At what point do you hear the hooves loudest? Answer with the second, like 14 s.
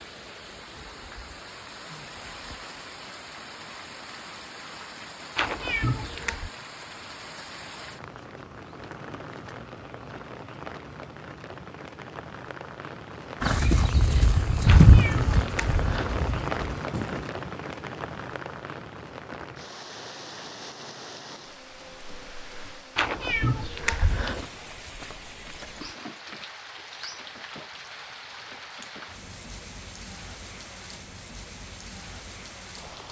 15 s.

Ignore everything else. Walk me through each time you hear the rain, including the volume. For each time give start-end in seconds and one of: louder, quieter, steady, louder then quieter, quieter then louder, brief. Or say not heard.
0.0-33.0 louder then quieter.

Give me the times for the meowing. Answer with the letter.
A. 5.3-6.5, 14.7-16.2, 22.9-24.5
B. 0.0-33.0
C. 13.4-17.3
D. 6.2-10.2
A.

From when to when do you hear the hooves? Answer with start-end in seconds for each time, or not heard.
13.4-17.3.